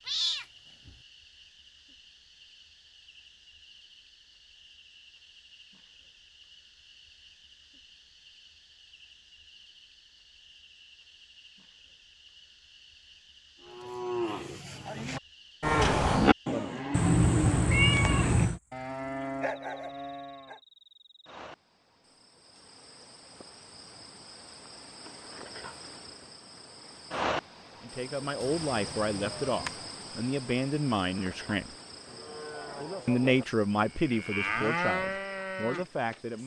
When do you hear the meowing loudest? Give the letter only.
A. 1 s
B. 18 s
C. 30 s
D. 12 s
B.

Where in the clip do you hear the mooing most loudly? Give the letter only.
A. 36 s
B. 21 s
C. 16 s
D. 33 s
C.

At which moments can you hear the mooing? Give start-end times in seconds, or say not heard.
13.6-20.6, 32.0-36.4.